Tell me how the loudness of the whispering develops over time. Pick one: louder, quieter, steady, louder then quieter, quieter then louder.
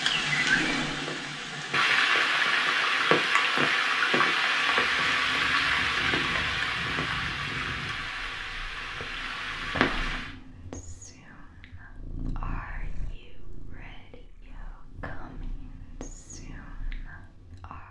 quieter.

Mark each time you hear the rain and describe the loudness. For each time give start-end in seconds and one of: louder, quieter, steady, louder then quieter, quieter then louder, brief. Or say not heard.
0.0-10.3 quieter.